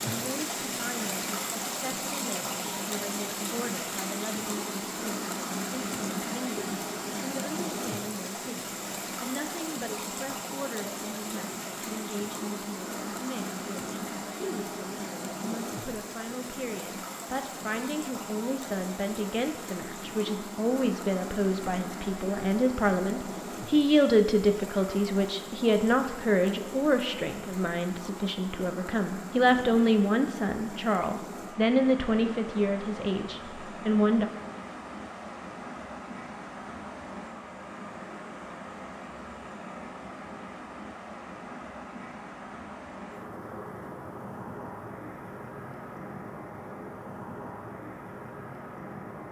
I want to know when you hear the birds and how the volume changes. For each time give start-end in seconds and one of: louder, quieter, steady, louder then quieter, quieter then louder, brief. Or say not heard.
not heard.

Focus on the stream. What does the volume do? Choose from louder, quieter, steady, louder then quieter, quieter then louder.
quieter.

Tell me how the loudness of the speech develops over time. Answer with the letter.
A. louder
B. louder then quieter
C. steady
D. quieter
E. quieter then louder
A.